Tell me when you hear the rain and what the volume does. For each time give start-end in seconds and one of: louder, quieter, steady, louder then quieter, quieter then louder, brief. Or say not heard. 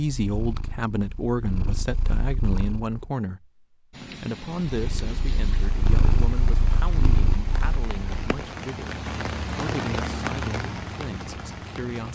3.9-12.1 louder.